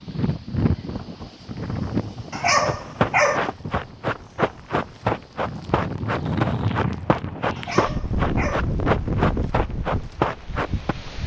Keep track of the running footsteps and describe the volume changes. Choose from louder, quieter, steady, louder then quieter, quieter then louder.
steady.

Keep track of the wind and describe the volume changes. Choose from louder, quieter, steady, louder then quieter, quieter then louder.
quieter then louder.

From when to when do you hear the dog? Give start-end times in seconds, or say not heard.
2.3-3.4, 7.5-8.7.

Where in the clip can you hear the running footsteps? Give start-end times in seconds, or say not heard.
2.6-10.9.